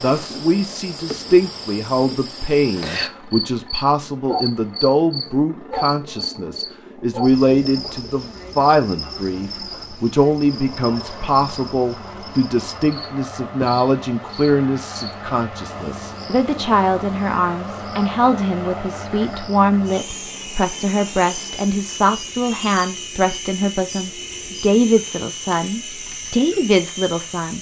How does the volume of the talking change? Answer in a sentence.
The loudness of the talking stays about the same.